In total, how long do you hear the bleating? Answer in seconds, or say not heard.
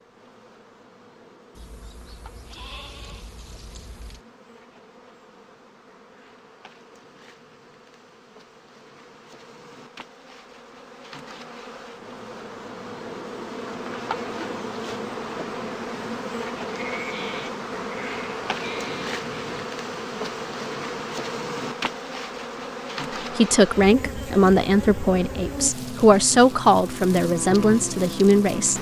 6 s.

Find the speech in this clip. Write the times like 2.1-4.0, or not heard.
23.4-28.7.